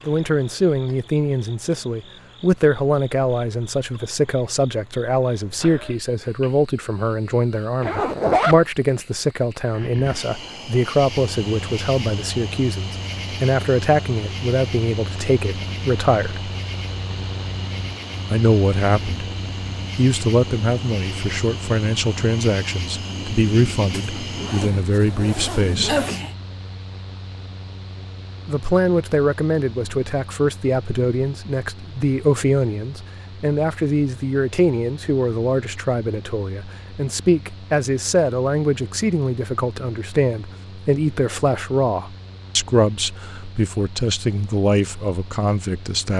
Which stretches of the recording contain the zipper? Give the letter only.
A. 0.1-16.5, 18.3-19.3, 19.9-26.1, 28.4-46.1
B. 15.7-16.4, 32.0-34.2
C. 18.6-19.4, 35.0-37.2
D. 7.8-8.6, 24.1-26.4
D.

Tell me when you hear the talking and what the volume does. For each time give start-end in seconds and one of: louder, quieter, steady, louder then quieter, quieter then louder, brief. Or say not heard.
0.1-16.5 steady
18.3-19.3 brief
19.9-26.1 steady
28.4-46.1 steady.